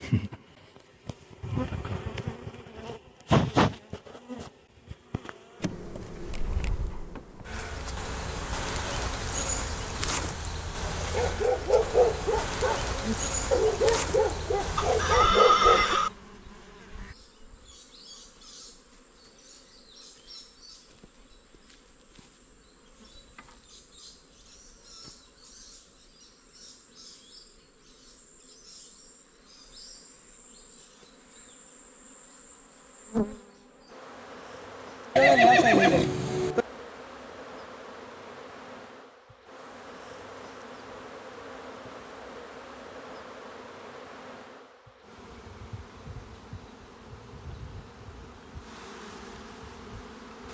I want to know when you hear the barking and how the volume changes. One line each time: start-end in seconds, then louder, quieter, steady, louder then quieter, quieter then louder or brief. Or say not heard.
10.9-15.9 quieter then louder.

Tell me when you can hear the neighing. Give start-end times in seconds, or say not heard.
14.8-16.1, 35.1-36.6.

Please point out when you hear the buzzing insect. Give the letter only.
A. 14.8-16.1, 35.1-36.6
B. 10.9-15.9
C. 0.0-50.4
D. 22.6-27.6
C.